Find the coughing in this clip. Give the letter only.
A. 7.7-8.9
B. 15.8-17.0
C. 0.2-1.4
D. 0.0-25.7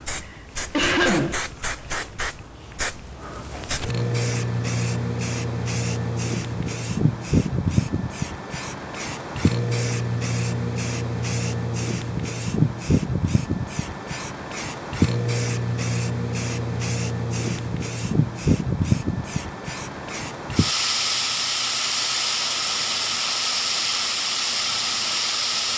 C.